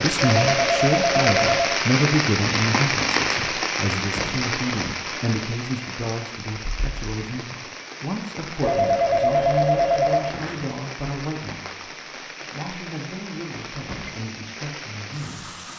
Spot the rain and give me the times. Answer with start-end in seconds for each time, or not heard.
0.0-15.7.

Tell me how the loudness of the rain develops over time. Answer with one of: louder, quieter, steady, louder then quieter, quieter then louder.
quieter.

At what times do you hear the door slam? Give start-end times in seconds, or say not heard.
4.0-4.5, 13.8-14.2.